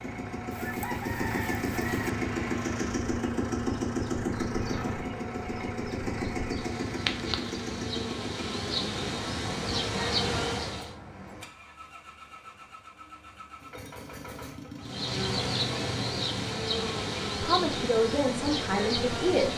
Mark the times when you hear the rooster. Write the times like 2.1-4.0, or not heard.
0.5-2.1.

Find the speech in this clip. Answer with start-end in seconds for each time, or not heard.
17.4-19.5.